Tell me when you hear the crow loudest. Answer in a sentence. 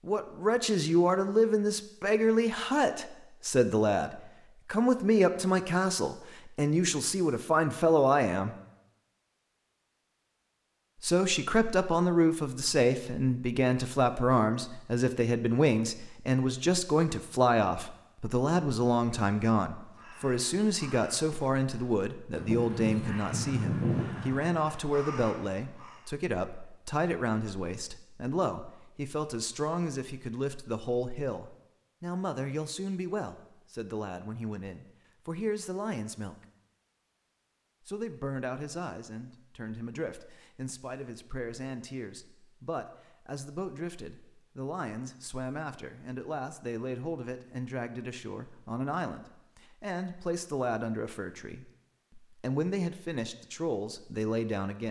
The volume of the crow peaks at 24 seconds.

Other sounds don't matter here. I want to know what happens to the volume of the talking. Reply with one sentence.
The volume of the talking goes down.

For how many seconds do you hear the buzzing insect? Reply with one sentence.
The buzzing insect can't be heard in this clip.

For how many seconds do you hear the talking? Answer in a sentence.
You can hear the talking for 51 seconds altogether.